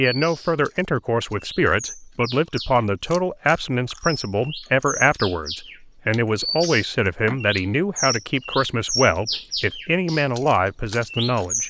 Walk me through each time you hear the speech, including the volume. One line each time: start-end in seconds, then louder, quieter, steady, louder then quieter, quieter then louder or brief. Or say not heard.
0.0-11.6 steady.